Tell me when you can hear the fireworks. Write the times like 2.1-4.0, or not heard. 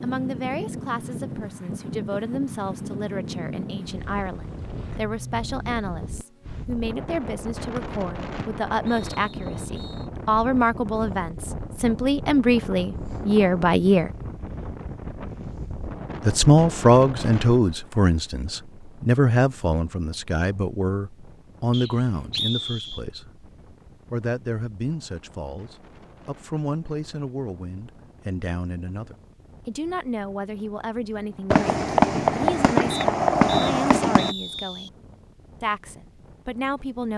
31.5-34.4.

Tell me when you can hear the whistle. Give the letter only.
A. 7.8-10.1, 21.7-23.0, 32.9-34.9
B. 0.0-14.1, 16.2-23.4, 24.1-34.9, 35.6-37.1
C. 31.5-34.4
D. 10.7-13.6
A.